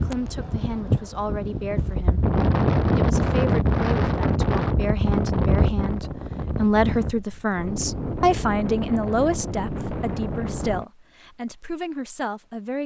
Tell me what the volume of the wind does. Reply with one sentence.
The volume of the wind goes up, then down.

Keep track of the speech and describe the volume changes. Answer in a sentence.
The loudness of the speech goes up, then down.